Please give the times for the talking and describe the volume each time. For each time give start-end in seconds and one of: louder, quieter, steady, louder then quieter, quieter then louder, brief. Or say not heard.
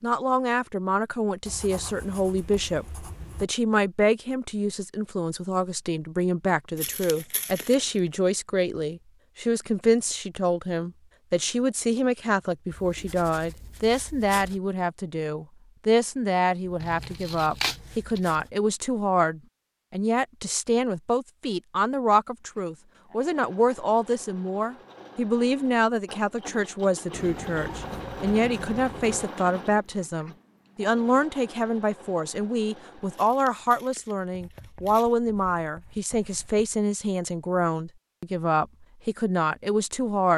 0.0-40.3 steady.